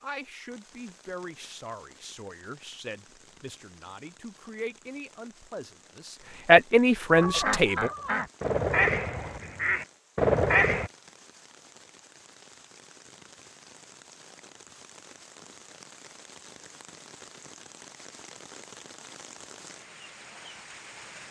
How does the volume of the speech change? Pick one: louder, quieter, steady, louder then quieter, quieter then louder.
louder.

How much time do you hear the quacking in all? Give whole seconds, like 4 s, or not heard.
4 s.